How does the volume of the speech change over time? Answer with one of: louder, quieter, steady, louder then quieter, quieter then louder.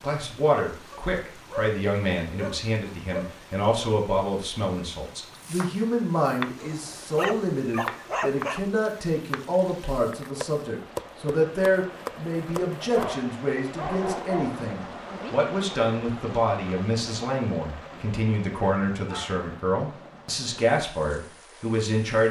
steady.